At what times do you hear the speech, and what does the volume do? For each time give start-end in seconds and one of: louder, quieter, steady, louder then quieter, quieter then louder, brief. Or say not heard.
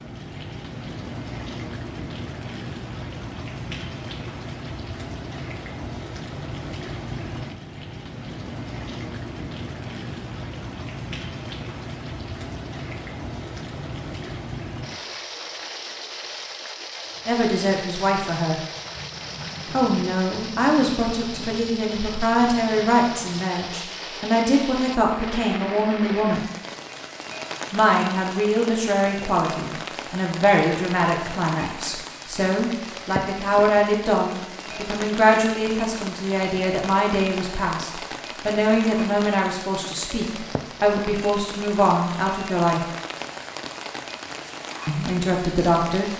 17.2-18.6 brief
19.7-26.5 steady
27.7-42.8 steady
44.9-46.1 brief.